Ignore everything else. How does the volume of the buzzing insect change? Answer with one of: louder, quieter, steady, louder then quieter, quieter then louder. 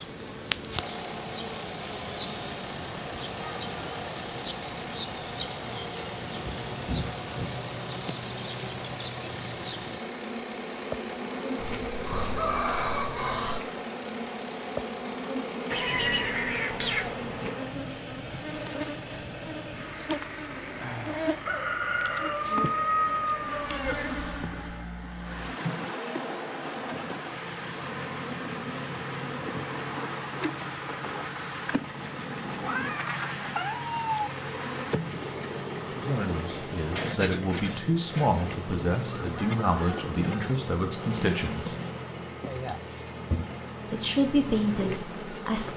steady.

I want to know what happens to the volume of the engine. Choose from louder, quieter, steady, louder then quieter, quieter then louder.
steady.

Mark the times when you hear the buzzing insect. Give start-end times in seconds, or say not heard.
0.0-45.7.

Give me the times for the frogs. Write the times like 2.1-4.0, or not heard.
not heard.